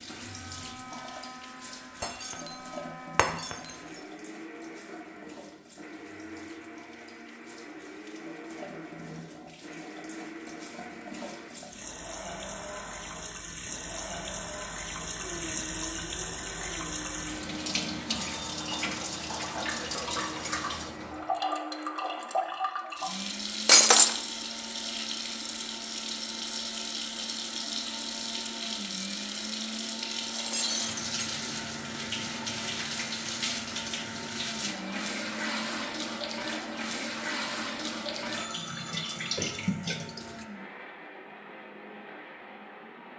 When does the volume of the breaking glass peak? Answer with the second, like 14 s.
24 s.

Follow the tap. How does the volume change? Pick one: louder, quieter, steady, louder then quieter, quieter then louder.
louder.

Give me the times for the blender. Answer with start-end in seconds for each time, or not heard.
0.0-43.1.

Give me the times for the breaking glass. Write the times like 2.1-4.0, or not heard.
2.0-2.5, 3.1-3.6, 23.6-24.1, 30.3-31.1.